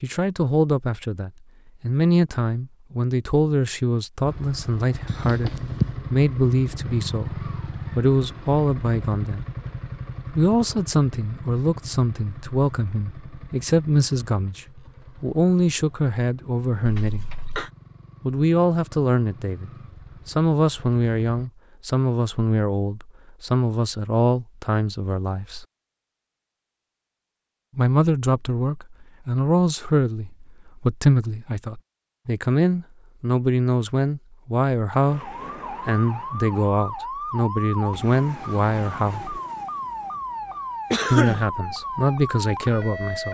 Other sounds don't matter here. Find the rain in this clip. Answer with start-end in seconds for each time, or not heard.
not heard.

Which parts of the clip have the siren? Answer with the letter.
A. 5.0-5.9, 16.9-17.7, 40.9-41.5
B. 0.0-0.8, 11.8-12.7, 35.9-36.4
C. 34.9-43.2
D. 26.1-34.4
C.